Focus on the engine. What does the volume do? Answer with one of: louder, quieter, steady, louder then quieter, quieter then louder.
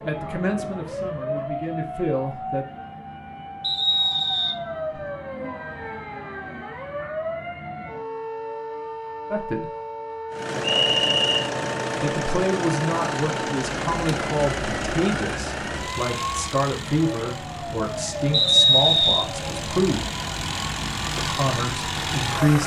quieter then louder.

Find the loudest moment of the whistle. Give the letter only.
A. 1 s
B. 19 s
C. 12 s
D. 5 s
B.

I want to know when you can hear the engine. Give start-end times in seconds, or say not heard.
10.3-22.6.